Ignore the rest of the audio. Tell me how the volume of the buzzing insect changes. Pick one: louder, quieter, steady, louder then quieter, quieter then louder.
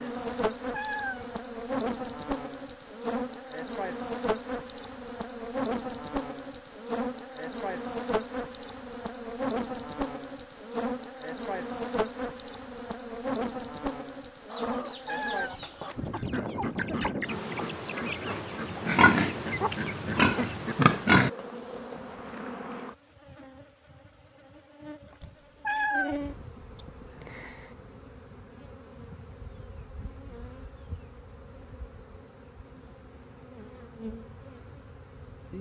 quieter.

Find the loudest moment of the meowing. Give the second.
26 s.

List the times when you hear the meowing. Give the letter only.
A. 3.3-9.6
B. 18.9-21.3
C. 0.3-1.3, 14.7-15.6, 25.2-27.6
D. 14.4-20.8
C.